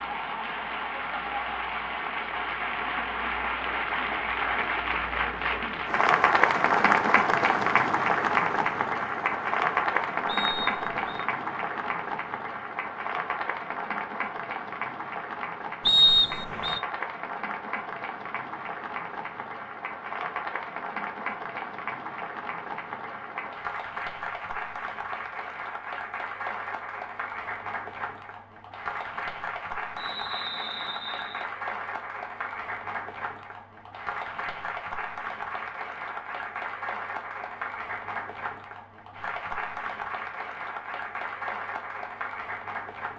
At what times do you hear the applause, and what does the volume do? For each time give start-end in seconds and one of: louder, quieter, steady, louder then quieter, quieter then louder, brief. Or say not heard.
0.0-43.1 quieter.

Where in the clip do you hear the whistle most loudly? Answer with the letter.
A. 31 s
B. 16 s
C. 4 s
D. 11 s
B.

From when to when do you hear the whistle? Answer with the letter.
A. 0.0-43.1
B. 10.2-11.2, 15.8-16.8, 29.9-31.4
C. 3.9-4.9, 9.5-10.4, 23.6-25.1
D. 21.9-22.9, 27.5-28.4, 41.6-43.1
B.